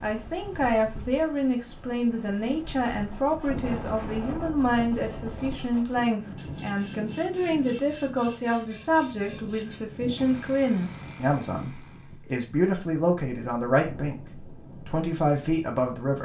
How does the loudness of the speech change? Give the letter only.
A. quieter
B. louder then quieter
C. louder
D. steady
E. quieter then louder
D.